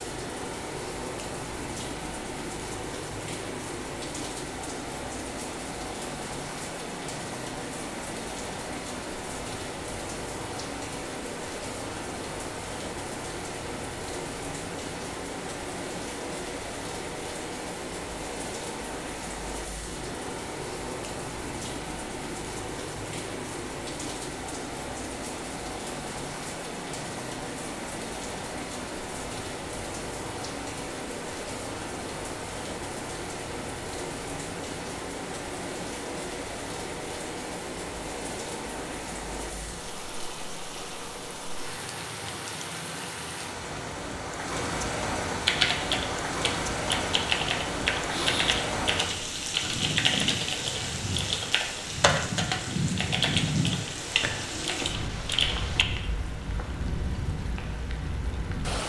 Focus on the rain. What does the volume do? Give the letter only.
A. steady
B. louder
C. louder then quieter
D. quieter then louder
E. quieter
A.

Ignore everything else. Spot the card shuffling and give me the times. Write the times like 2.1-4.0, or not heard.
not heard.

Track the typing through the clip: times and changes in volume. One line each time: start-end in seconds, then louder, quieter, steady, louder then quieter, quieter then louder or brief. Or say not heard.
45.5-55.9 steady.